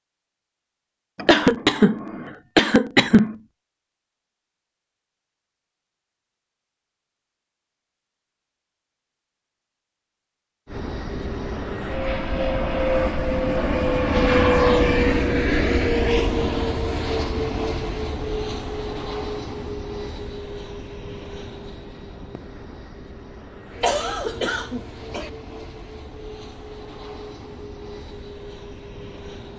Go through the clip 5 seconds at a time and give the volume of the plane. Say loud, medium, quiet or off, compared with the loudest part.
off, off, loud, loud, quiet, quiet.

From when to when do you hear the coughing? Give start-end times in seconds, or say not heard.
1.1-3.4, 23.8-25.3.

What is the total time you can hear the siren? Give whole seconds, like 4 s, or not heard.
not heard.